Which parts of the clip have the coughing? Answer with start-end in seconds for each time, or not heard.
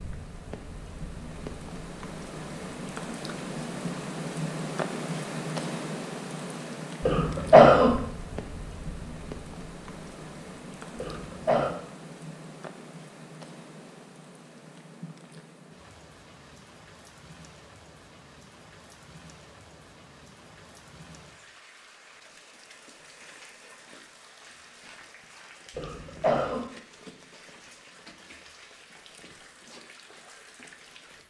7.0-7.9, 10.9-11.7, 25.8-26.6.